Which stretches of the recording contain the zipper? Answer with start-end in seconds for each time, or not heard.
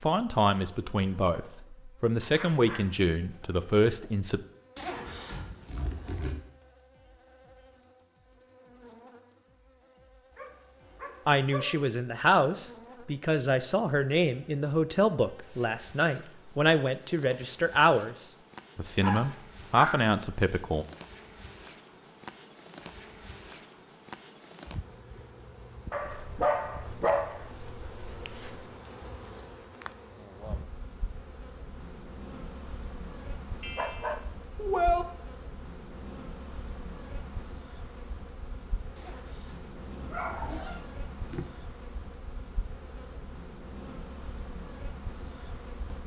4.8-6.3, 39.0-40.9.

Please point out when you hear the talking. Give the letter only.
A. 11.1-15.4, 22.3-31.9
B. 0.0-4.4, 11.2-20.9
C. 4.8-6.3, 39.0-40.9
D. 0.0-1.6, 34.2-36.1
B.